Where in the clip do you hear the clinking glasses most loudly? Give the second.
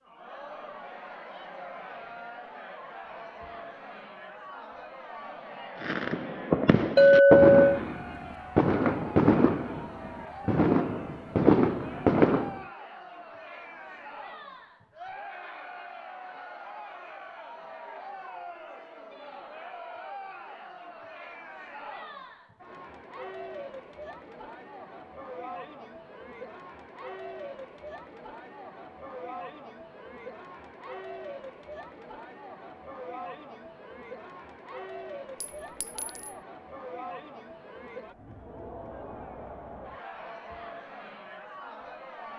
7 s.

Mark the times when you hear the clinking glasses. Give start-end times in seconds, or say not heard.
7.0-7.8, 35.4-36.3.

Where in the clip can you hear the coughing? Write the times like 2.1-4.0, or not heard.
not heard.